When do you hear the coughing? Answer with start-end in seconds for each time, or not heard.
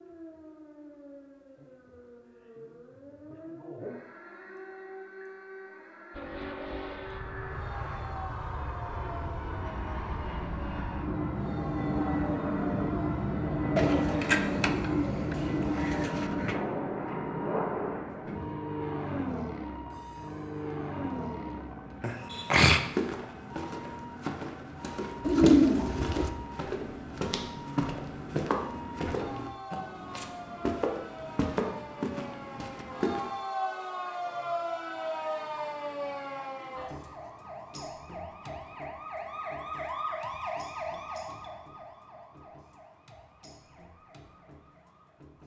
22.0-22.8.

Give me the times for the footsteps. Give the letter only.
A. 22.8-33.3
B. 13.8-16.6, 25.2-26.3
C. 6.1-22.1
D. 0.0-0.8
A.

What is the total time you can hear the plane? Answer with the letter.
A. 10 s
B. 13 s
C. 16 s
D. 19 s
C.